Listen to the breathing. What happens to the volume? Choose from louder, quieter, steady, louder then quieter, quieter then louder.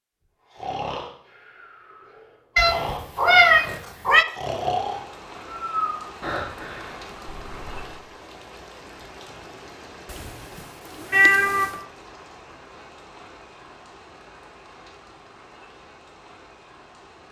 louder then quieter.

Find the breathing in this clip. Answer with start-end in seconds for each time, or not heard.
0.5-8.0.